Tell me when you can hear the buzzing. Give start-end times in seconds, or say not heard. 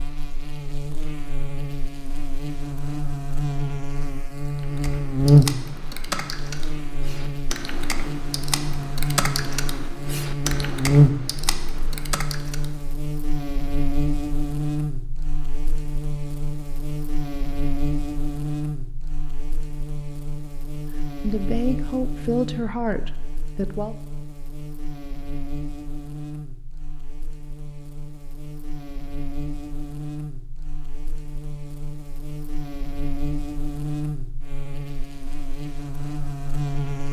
0.0-37.0.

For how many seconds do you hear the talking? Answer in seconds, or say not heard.
3 s.